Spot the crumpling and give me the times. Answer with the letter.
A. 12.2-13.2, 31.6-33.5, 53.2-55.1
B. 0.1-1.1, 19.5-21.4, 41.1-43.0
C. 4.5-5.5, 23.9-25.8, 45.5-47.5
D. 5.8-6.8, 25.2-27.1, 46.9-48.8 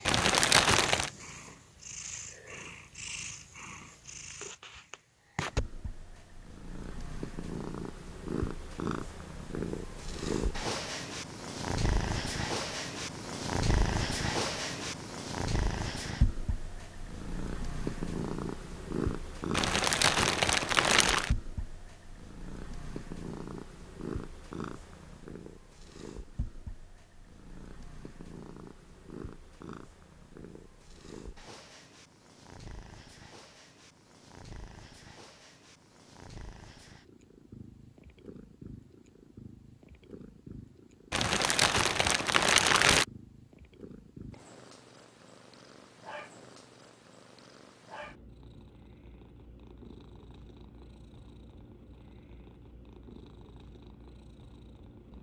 B.